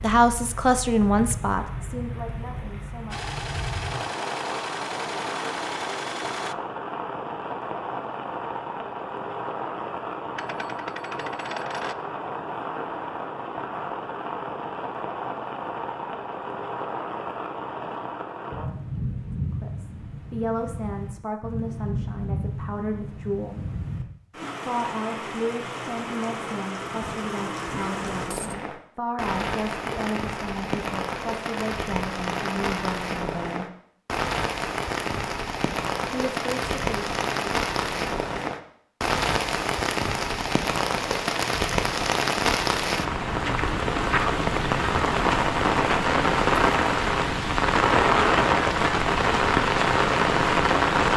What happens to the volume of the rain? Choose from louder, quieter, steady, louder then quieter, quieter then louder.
louder.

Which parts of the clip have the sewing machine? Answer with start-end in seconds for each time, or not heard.
3.1-6.5.